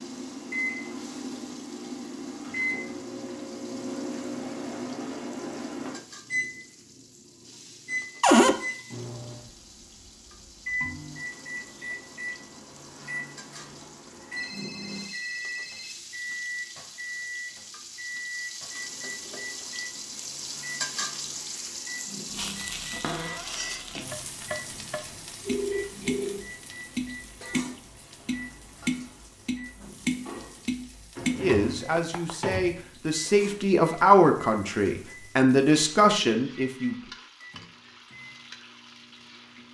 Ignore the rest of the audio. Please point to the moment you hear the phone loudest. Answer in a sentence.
The volume of the phone peaks at 26 seconds.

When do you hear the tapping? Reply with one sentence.
You can hear the tapping from 24.1 to 32.4 s.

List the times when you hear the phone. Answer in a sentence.
The phone can be heard from 14.3 to 16.0 s and from 25.4 to 26.4 s.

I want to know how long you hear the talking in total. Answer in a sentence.
You can hear the talking for 6 seconds altogether.